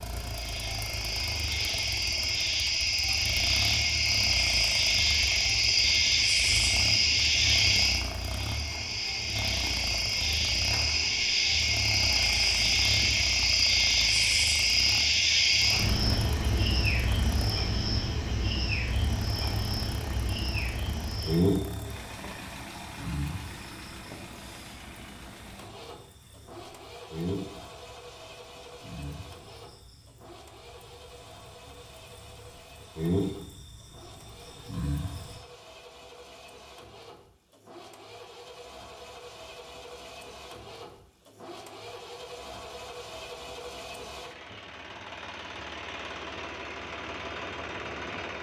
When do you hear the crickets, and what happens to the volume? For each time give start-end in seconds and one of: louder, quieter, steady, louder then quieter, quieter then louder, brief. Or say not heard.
0.1-35.4 quieter.